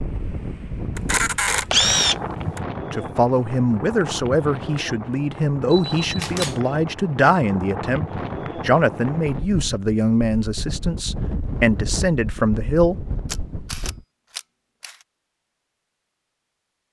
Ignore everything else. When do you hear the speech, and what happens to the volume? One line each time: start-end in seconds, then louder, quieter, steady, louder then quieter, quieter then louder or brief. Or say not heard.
2.9-12.9 steady.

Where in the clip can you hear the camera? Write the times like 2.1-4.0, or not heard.
0.9-2.6, 5.7-6.6, 13.2-15.1.